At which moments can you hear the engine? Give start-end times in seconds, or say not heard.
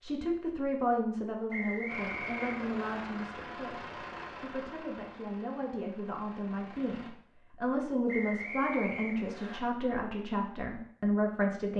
1.9-7.1.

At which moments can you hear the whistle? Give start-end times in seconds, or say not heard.
1.5-3.0, 8.1-9.6.